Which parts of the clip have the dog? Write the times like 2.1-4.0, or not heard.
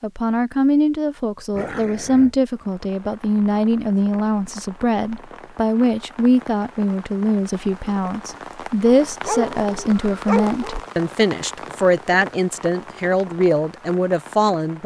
1.5-2.4, 8.8-10.8.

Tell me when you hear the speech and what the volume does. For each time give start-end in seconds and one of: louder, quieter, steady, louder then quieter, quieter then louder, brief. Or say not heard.
0.0-14.8 steady.